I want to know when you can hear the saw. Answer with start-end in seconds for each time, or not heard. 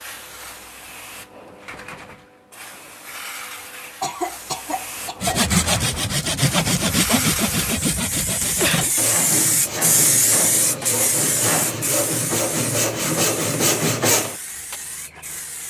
5.2-14.8.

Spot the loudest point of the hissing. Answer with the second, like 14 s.
10 s.